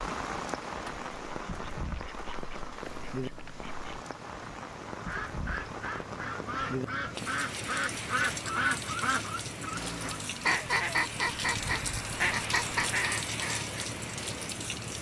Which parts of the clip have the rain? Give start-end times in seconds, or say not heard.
0.0-14.9.